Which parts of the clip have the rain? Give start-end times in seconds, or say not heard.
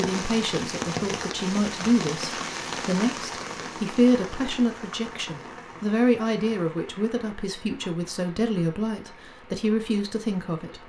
0.0-10.8.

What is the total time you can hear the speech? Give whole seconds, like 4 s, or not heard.
11 s.